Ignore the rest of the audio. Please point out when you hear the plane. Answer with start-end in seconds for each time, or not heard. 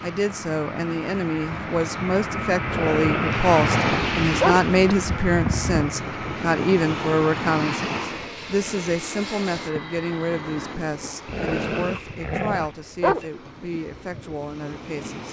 0.0-10.8.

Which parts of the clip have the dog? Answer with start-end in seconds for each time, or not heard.
2.6-4.7, 11.2-13.2.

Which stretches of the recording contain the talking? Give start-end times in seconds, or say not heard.
0.0-15.2.